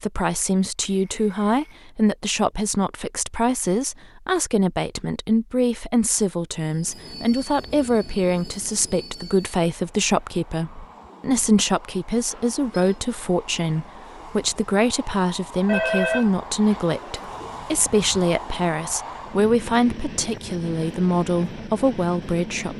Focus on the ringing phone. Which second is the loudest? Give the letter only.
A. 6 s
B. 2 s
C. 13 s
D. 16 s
D.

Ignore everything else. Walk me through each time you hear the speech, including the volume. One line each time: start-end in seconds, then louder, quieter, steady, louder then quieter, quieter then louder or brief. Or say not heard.
0.0-22.7 steady.